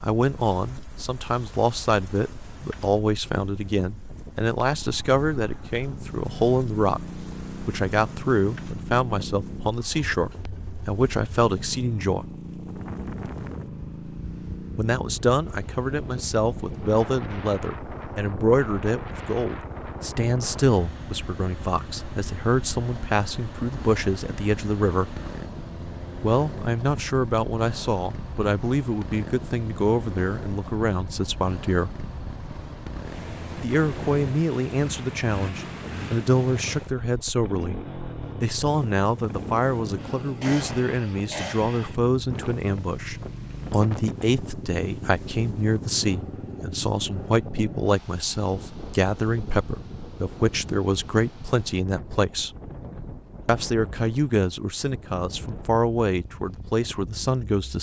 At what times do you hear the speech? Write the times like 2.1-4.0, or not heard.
0.0-12.2, 14.8-25.1, 26.2-32.0, 33.6-37.8, 38.4-52.5, 53.5-57.7.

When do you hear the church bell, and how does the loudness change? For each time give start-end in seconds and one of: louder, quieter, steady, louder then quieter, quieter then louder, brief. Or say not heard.
not heard.